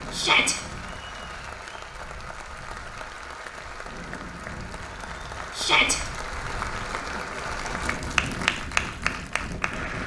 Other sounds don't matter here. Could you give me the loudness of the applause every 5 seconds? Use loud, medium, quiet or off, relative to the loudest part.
medium, loud.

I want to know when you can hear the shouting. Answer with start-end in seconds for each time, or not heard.
0.1-0.6, 5.5-6.0.